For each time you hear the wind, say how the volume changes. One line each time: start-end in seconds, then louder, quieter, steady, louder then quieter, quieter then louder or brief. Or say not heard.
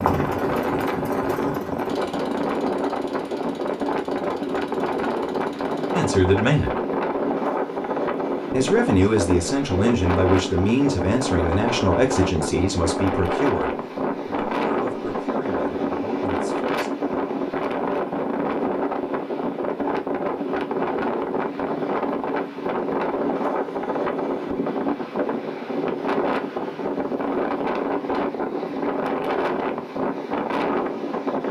0.0-31.4 steady.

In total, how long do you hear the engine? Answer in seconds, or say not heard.
6 s.